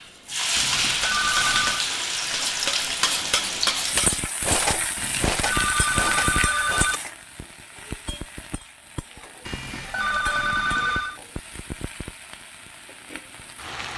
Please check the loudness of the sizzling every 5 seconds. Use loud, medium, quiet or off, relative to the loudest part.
loud, medium, quiet.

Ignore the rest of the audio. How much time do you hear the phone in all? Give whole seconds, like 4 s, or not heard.
5 s.